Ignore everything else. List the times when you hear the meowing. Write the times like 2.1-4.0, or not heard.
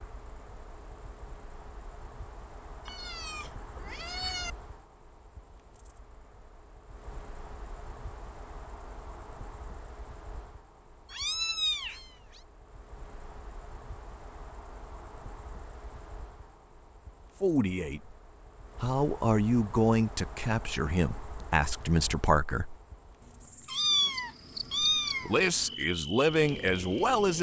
2.9-4.5, 11.1-12.4, 23.2-25.8.